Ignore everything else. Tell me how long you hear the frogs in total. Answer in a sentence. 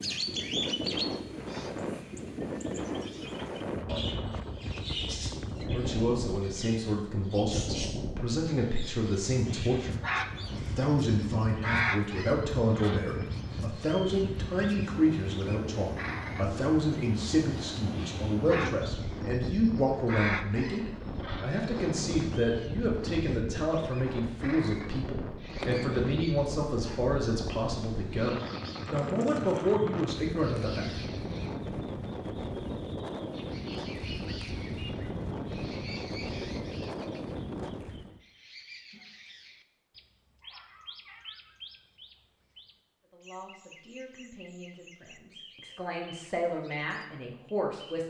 The frogs can't be heard in this clip.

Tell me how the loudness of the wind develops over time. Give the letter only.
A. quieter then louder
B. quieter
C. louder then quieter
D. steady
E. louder
D.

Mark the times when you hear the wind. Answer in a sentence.
The wind can be heard from 0.0 to 38.2 s.